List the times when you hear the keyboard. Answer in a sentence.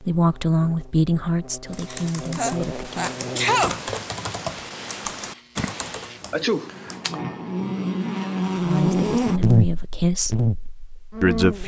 The keyboard can be heard from 1.7 to 7.2 s.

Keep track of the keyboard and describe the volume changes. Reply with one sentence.
The volume of the keyboard goes up, then down.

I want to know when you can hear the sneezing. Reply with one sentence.
You can hear the sneezing from 1.9 to 3.9 s and from 6.3 to 6.7 s.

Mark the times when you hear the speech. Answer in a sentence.
You can hear the speech from 0.0 to 3.1 s, from 8.6 to 10.4 s and from 11.2 to 11.6 s.